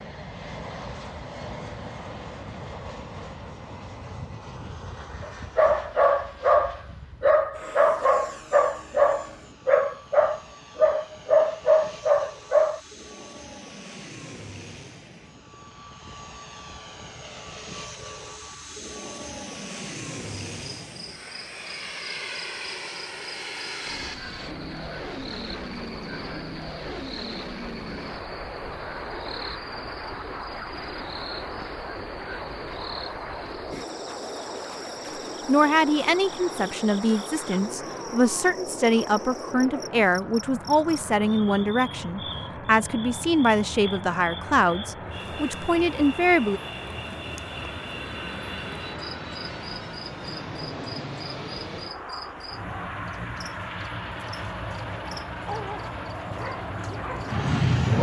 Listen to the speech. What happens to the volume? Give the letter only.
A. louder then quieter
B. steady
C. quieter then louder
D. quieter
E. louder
B.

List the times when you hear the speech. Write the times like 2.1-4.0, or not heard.
35.5-46.6.